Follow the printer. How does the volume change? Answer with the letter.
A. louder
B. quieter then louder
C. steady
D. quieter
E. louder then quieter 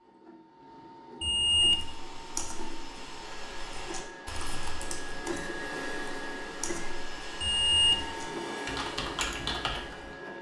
A.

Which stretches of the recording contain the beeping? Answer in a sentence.
The beeping can be heard from 1.2 to 1.9 s and from 7.4 to 8.1 s.